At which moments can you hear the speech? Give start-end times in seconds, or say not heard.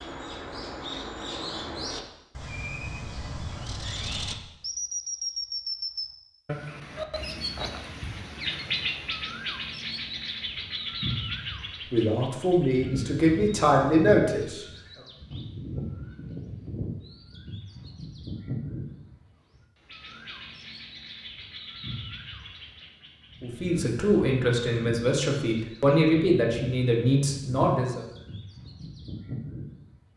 11.9-14.7, 23.4-28.1.